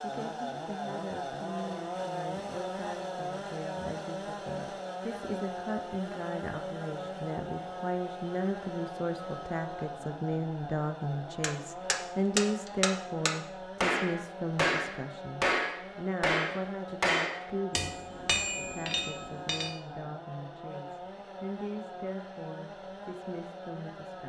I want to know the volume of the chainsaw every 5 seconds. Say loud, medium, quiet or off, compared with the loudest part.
loud, loud, medium, medium, medium.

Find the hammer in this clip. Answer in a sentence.
The hammer can be heard from 11.4 to 19.8 s.